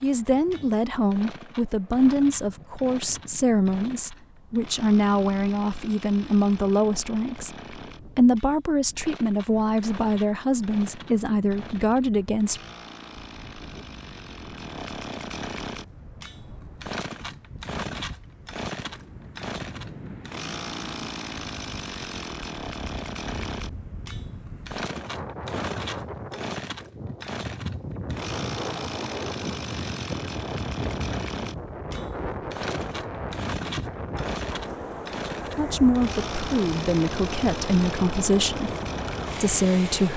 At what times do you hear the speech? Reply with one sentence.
You can hear the speech from 0.0 to 7.5 s, from 8.2 to 12.6 s, from 35.5 to 38.8 s and from 39.4 to 40.1 s.